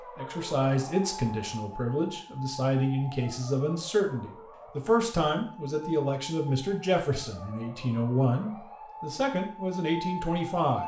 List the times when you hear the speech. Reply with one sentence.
The speech can be heard from 0.1 to 10.8 s.